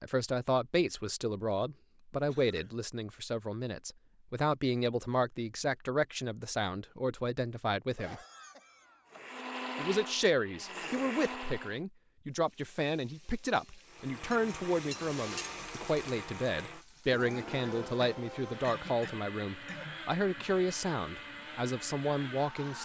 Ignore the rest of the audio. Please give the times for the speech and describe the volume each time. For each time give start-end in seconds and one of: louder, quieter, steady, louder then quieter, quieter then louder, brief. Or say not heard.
0.0-8.2 steady
9.8-22.8 steady.